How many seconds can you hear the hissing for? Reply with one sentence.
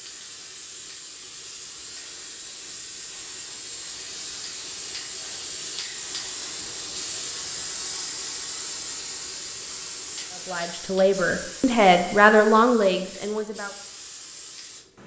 The hissing can be heard for 15 seconds in total.